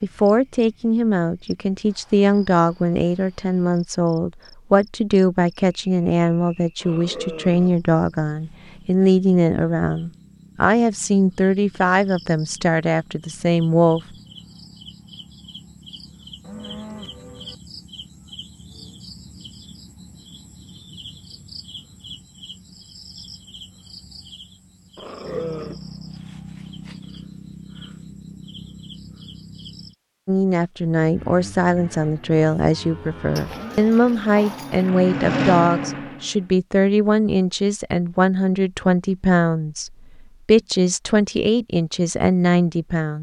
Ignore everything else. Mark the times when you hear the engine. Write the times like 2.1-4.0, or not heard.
30.9-36.5.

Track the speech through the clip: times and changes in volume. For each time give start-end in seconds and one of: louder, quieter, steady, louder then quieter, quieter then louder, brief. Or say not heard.
0.0-14.0 steady
30.2-43.1 steady.